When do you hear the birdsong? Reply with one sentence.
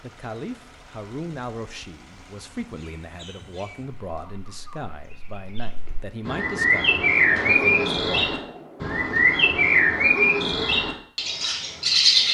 You can hear the birdsong from 2.6 to 12.2 s.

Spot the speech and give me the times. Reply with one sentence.
You can hear the speech from 0.0 to 8.3 s.